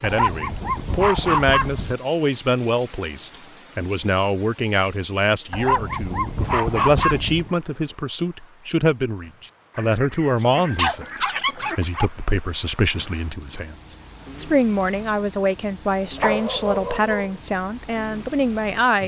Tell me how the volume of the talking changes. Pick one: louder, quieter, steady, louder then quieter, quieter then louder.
steady.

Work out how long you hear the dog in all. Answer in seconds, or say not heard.
7 s.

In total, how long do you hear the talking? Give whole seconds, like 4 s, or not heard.
19 s.